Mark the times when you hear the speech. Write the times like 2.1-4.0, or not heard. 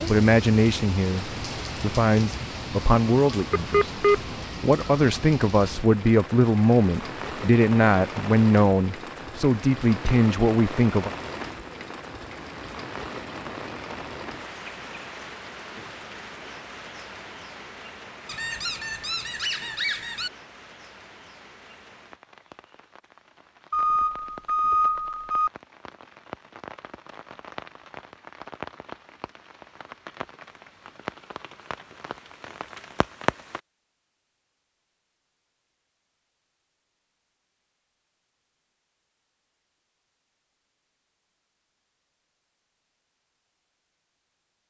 0.1-11.1.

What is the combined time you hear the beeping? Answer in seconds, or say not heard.
3 s.